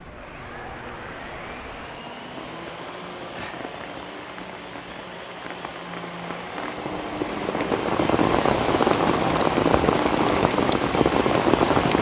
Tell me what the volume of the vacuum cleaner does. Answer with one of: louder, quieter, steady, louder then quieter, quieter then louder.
louder.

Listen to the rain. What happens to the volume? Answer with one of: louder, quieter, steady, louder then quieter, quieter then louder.
louder.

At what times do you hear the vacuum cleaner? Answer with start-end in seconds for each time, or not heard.
0.1-11.9.